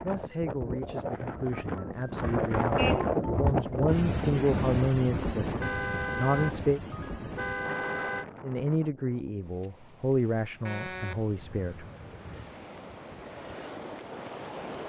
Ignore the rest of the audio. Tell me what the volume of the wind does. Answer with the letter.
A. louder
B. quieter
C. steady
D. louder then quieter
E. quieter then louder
E.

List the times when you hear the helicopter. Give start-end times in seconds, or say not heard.
not heard.